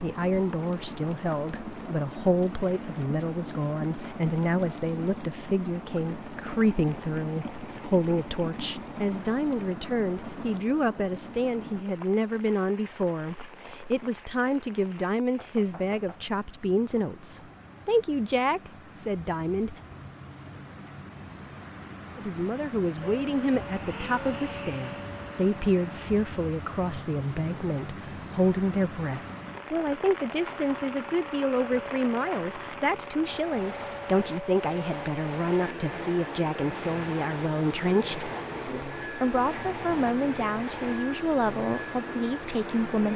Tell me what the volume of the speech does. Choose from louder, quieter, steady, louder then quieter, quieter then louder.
steady.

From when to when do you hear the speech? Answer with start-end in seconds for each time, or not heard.
0.0-19.8, 22.1-43.1.